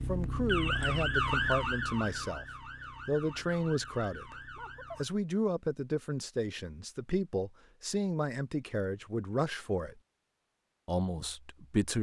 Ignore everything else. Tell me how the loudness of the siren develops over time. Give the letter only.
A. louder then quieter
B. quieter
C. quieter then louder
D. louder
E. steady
B.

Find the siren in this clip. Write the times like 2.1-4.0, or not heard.
0.0-5.1.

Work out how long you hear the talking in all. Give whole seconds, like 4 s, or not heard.
10 s.